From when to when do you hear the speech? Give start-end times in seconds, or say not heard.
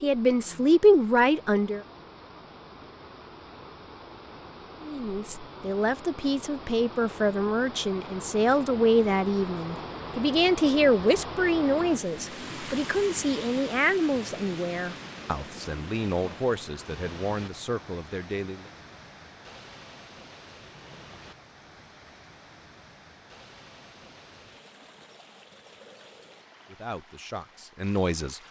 0.0-1.8, 4.8-18.7, 26.7-28.4.